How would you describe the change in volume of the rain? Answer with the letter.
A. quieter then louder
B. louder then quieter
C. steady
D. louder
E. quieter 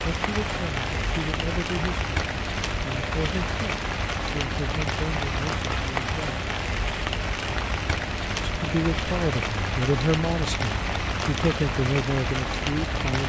C.